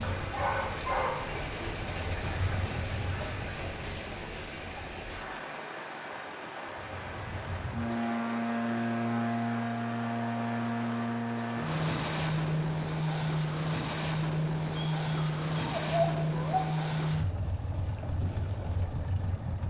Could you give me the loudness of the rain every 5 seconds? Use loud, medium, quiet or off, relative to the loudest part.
loud, loud, loud, off.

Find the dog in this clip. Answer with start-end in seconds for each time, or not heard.
0.0-1.4, 14.8-16.6.